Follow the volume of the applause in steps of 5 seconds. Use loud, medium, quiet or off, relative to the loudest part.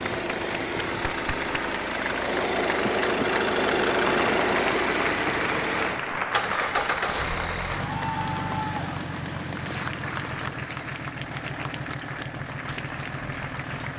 loud, loud, medium.